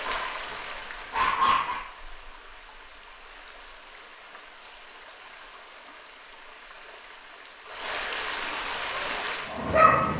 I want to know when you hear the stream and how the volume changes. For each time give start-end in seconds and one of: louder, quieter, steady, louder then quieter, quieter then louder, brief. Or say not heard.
0.0-9.8 quieter then louder.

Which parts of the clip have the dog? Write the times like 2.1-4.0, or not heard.
0.0-1.8, 8.6-10.1.